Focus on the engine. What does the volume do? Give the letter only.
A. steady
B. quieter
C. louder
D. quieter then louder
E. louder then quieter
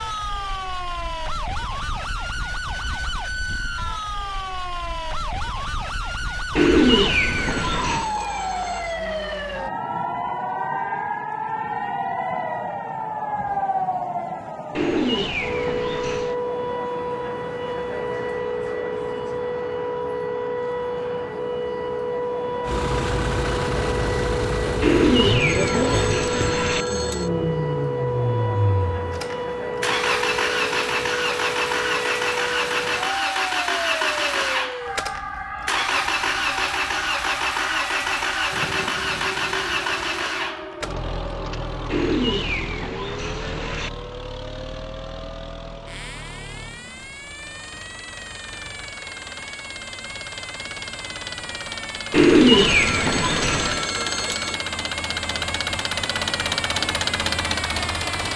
D.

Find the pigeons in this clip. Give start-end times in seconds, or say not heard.
6.5-8.1, 14.8-16.4, 24.8-26.9, 41.9-43.9, 52.1-53.9.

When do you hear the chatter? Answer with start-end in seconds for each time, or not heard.
not heard.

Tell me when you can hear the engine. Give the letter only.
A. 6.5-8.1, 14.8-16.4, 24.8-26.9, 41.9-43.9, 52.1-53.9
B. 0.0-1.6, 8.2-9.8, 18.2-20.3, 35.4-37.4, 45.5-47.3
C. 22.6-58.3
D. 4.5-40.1
C.